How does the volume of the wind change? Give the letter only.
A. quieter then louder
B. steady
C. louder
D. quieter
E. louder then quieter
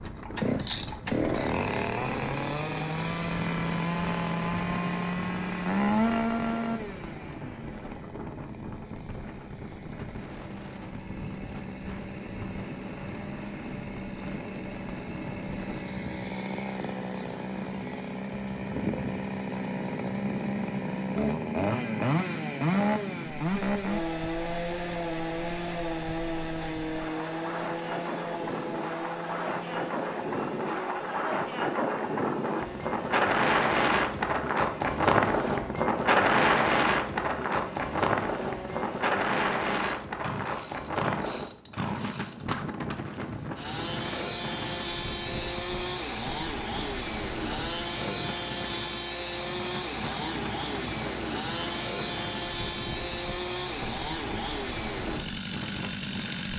E.